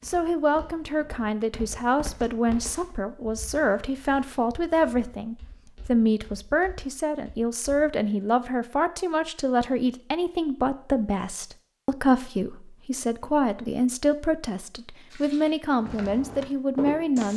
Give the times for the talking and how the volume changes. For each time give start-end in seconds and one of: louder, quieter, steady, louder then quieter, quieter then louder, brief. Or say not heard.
0.1-17.3 steady.